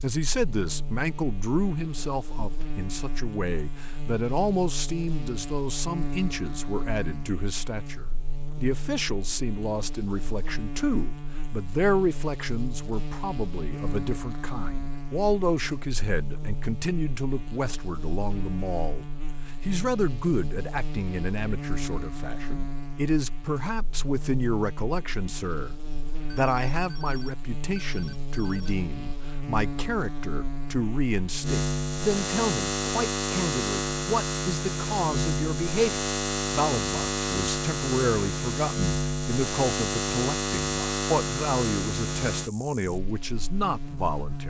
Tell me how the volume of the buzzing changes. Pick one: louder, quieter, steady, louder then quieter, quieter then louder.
louder.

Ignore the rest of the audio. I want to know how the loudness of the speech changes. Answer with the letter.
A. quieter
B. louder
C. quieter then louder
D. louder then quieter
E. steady
E.